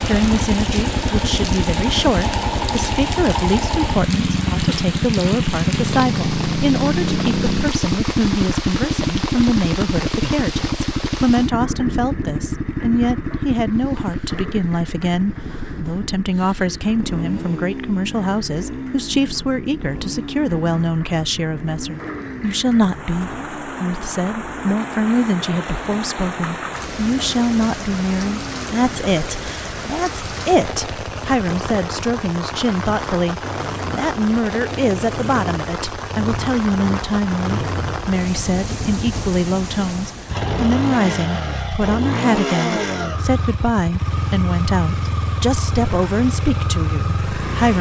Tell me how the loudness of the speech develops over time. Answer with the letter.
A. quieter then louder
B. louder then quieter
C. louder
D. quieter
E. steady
E.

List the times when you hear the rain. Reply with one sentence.
The rain can be heard from 0.0 to 40.5 s.